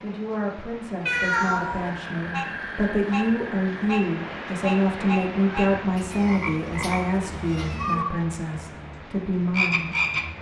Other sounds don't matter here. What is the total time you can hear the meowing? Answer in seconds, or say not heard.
3 s.